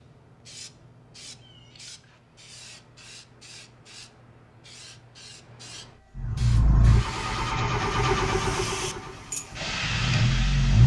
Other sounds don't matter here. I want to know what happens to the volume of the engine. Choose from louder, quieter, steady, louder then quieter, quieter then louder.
quieter then louder.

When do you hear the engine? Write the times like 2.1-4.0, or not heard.
6.2-10.8.